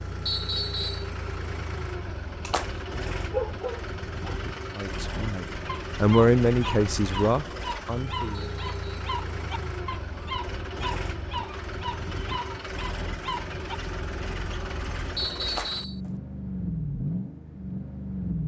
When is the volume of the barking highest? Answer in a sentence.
The volume of the barking peaks at 4 seconds.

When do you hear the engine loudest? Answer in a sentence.
The loudest moment of the engine is at 17 seconds.